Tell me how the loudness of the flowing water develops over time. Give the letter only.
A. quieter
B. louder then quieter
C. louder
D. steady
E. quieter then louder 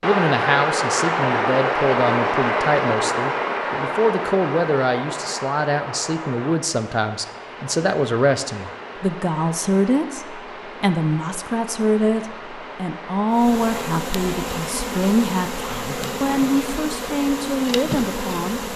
A.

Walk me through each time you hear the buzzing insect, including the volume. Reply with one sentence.
You can hear the buzzing insect from 13.3 to 18.7 s, at a steady volume.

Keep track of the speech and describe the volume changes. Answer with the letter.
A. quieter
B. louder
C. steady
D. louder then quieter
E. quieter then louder
C.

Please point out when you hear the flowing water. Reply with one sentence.
You can hear the flowing water from 0.0 to 18.7 s.